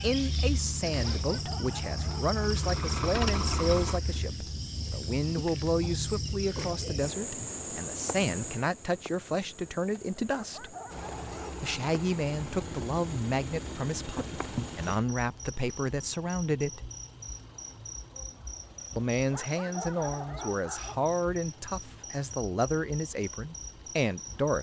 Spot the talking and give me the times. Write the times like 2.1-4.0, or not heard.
0.0-10.8, 11.6-16.9, 18.9-24.5.